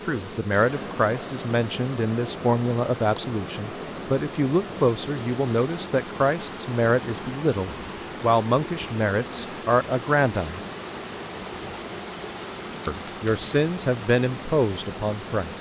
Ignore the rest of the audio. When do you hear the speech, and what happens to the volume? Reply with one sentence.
You can hear the speech from 0.1 to 10.6 s, at a steady volume; and briefly from 12.8 to 15.5 s.